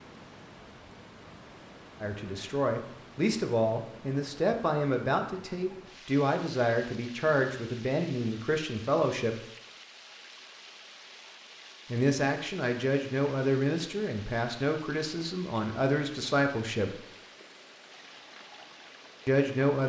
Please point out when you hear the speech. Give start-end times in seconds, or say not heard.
2.0-9.3, 11.9-17.0, 19.2-19.8.